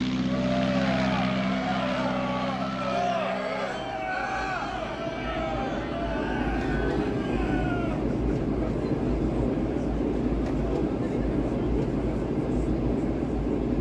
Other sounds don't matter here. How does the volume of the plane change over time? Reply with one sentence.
The loudness of the plane goes down, then up.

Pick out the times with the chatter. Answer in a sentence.
The chatter can be heard from 0.1 to 13.6 s.